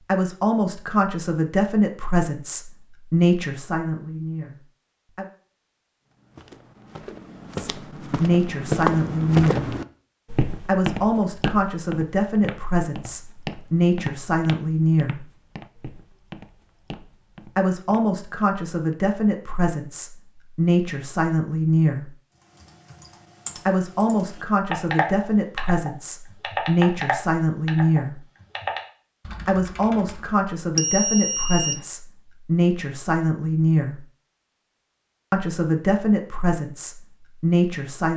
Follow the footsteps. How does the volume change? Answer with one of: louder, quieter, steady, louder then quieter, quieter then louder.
quieter.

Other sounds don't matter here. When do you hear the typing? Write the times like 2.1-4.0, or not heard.
22.6-30.6.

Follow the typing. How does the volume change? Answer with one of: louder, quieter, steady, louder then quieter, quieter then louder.
louder then quieter.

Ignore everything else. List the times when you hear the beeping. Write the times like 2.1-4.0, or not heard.
30.8-31.8.